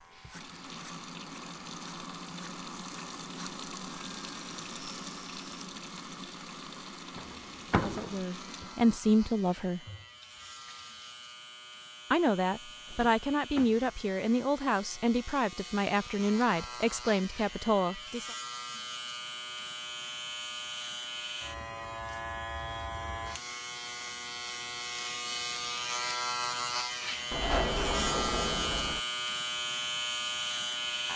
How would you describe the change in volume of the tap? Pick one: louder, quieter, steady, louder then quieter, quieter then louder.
quieter.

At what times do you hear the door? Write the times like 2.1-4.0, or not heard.
7.2-8.2, 12.9-13.9, 27.3-29.0.